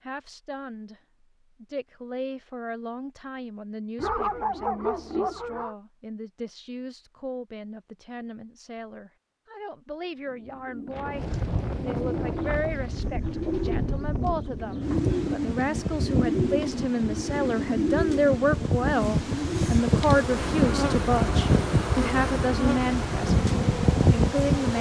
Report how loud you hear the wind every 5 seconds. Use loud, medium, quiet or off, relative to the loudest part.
off, off, medium, loud, loud.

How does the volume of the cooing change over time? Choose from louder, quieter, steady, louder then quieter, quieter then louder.
louder.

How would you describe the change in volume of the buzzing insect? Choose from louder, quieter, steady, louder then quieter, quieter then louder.
steady.